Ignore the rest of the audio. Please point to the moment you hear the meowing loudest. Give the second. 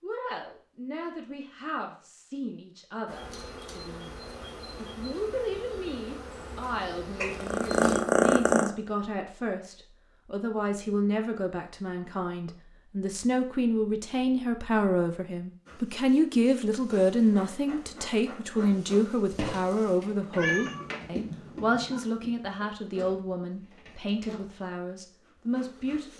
8 s.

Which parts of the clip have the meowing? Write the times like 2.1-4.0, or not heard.
7.2-8.8, 20.4-22.0.